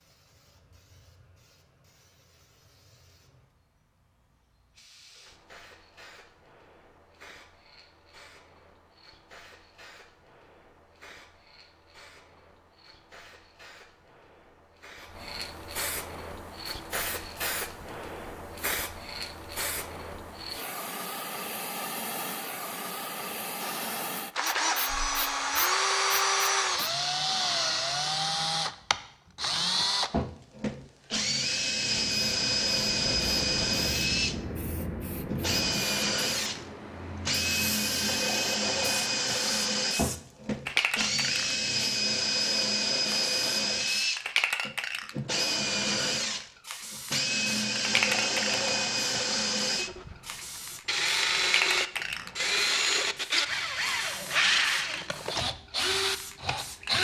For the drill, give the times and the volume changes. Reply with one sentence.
You can hear the drill from 23.6 to 56.9 s, at a steady volume.